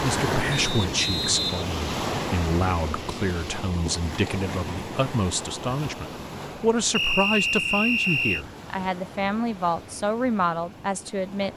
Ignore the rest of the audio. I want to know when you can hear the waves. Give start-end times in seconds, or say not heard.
0.0-11.5.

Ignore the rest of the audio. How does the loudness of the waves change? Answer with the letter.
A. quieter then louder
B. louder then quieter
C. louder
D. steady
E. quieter
E.